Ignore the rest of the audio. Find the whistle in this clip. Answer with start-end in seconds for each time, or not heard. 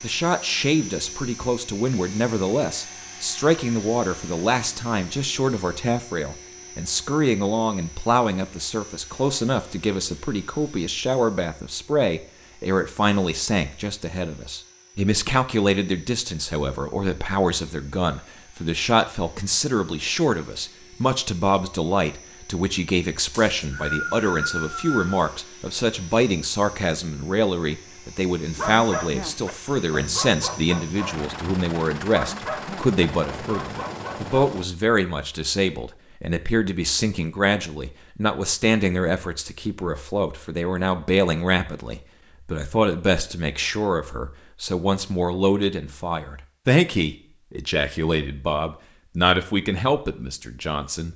23.3-25.1.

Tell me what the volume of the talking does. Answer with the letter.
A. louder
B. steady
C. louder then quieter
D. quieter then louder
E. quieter
B.